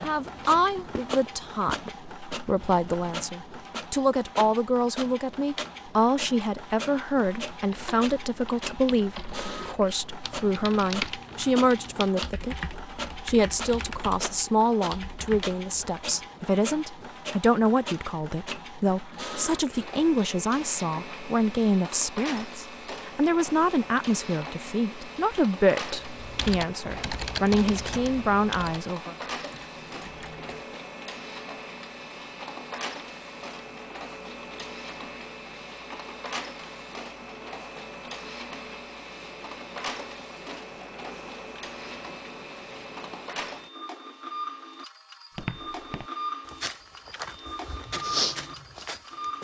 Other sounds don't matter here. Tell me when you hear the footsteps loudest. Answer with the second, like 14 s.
48 s.